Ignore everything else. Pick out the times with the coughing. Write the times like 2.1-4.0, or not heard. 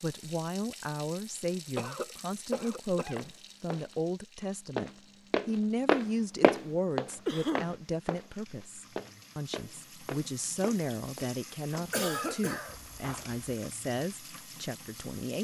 1.8-3.2, 7.2-7.8, 11.9-12.8.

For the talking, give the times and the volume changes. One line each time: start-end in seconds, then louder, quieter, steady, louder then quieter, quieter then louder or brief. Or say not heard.
0.0-15.3 steady.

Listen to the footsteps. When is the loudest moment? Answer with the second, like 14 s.
6 s.